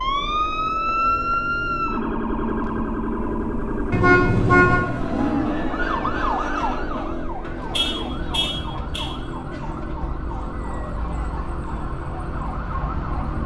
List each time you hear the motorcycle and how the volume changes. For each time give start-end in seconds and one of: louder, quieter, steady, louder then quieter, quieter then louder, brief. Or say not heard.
0.0-13.4 louder then quieter.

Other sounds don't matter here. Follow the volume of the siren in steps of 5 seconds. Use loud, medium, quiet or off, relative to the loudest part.
loud, medium, medium.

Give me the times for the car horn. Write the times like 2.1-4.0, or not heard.
3.9-4.8, 7.0-9.1.